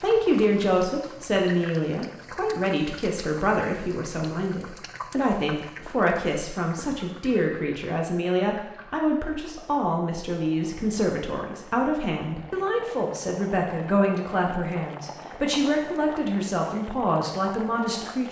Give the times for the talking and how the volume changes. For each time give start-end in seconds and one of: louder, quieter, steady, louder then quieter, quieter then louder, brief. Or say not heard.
0.0-18.2 steady.